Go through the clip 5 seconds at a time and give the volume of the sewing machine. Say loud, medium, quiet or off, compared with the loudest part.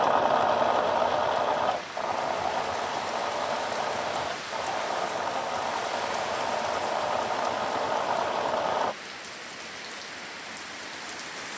loud, loud, off.